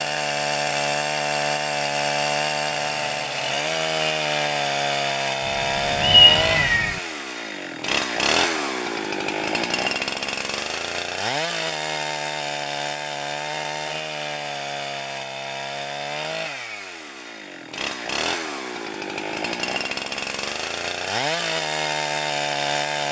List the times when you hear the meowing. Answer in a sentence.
The meowing can be heard from 6.0 to 7.0 s.